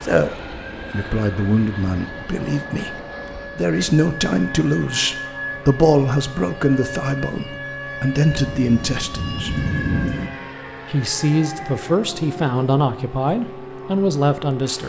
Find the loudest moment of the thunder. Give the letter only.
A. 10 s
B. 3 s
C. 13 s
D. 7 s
A.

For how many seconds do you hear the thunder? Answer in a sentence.
You can hear the thunder for 2 seconds altogether.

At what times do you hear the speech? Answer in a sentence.
You can hear the speech from 0.0 to 3.0 s, from 3.5 to 9.6 s and from 10.9 to 14.8 s.